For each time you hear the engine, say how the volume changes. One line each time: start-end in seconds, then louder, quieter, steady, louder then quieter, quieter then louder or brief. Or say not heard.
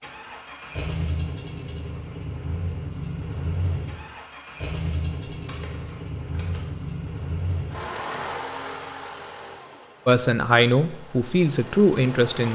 0.0-12.5 quieter.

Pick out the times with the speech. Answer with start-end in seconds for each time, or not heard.
10.1-12.5.